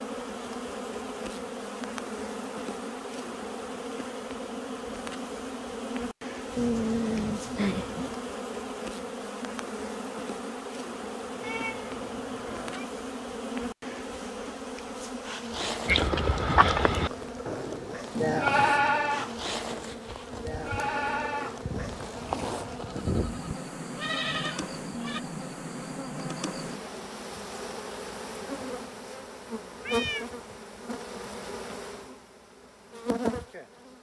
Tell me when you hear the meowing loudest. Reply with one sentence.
The volume of the meowing peaks at 7 seconds.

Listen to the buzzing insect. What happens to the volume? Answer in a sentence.
The loudness of the buzzing insect stays about the same.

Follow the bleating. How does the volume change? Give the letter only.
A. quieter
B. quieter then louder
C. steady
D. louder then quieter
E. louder
A.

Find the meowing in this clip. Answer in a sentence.
You can hear the meowing from 6.5 to 8.2 s, from 11.4 to 12.8 s and from 29.8 to 30.3 s.